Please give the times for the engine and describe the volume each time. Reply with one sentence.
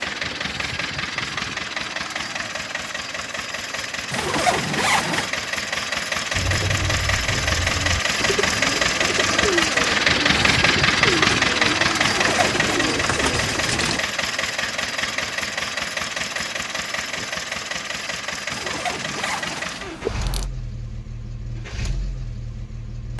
You can hear the engine from 0.0 to 23.1 s, getting louder then quieter.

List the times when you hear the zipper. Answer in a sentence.
You can hear the zipper from 4.1 to 5.3 s, from 12.0 to 12.8 s and from 18.5 to 20.4 s.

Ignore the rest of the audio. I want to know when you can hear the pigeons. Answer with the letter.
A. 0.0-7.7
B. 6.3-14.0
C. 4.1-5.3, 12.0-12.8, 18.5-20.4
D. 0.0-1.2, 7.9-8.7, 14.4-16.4
B.